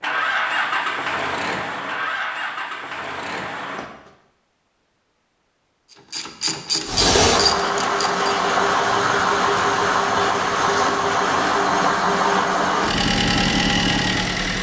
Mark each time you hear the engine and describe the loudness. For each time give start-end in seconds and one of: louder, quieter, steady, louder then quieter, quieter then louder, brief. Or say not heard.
0.0-4.1 quieter
6.8-14.5 steady.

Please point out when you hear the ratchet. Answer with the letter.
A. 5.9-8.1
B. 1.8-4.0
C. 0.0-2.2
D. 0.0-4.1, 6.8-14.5
A.